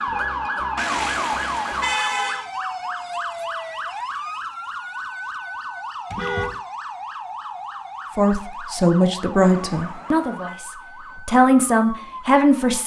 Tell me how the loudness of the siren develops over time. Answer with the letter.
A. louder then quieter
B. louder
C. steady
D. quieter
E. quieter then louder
D.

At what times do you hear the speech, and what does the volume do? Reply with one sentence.
You can hear the speech from 8.2 to 12.8 s, getting quieter then louder.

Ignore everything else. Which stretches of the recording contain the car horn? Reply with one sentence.
You can hear the car horn from 0.8 to 2.5 s, from 6.1 to 6.6 s and from 9.4 to 10.6 s.